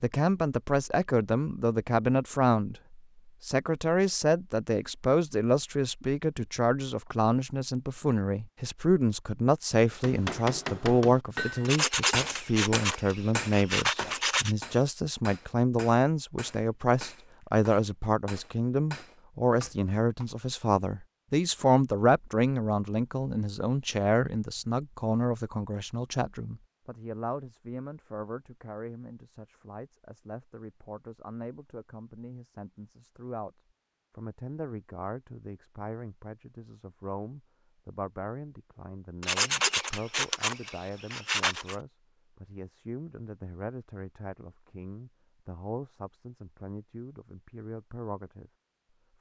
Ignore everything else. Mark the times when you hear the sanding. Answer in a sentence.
You can hear the sanding from 11.7 to 14.6 s and from 39.2 to 41.8 s.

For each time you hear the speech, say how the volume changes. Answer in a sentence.
You can hear the speech from 0.0 to 33.5 s, getting quieter; and from 34.1 to 48.5 s, at a steady volume.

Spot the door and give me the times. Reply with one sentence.
The door can't be heard in this clip.